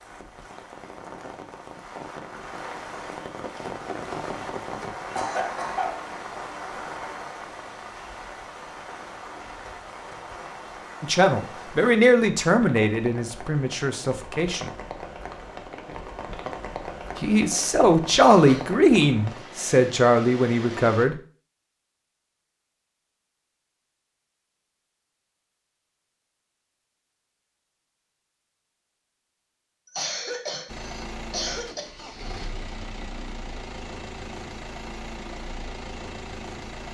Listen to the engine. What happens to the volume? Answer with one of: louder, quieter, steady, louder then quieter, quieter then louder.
steady.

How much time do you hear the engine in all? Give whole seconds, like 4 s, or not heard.
6 s.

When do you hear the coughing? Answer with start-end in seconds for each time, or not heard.
5.2-6.0, 17.5-18.7, 29.9-31.9.